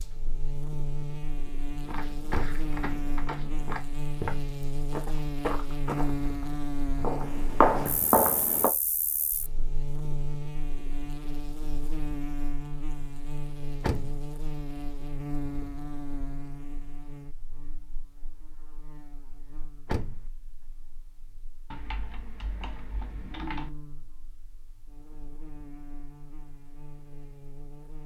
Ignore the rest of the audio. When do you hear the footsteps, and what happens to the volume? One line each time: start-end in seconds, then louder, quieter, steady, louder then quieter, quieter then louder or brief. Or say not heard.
1.9-8.7 louder.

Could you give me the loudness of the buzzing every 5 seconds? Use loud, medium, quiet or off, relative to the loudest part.
loud, loud, loud, medium, quiet, quiet.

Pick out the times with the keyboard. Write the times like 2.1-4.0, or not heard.
21.7-23.7.